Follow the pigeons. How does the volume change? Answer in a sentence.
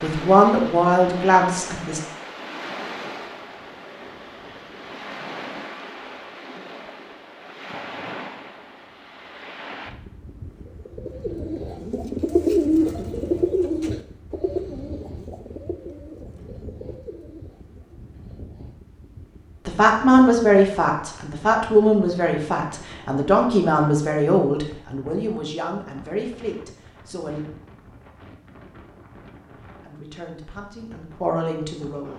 The volume of the pigeons goes up, then down.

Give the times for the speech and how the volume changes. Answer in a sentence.
The speech can be heard briefly from 0.0 to 2.0 s; from 19.6 to 27.4 s, getting quieter; and briefly from 29.9 to 32.1 s.